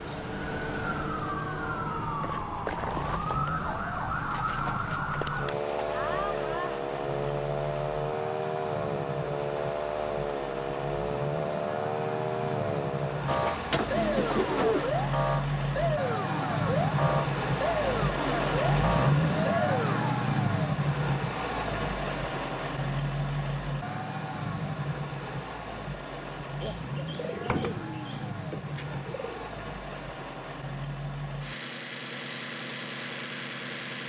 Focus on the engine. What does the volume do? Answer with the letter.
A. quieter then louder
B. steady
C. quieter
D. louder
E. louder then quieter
E.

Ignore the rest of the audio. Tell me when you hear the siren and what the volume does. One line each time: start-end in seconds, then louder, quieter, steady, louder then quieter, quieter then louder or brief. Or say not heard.
0.0-20.2 steady.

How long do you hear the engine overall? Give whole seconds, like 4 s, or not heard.
31 s.